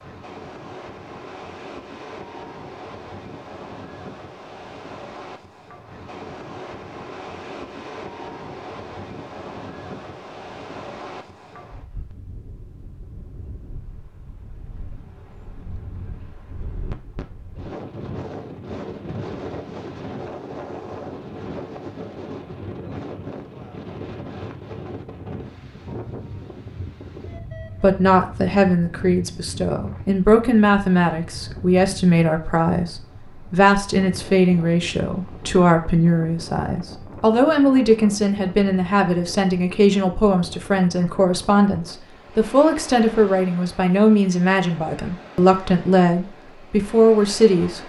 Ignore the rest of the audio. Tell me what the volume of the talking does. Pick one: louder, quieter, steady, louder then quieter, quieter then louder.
steady.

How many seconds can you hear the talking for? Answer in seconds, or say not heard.
20 s.